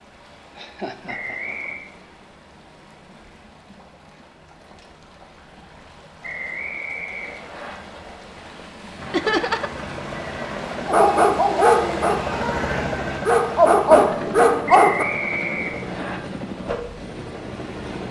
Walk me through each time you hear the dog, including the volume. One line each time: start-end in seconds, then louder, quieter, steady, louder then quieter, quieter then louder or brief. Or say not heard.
10.8-15.1 quieter then louder.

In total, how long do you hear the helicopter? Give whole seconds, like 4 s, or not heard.
9 s.